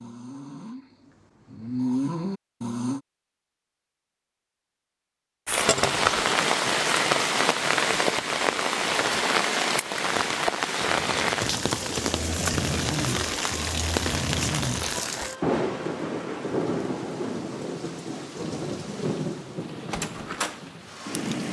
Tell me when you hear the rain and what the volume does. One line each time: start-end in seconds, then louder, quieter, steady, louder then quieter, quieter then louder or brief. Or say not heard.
5.5-21.4 quieter.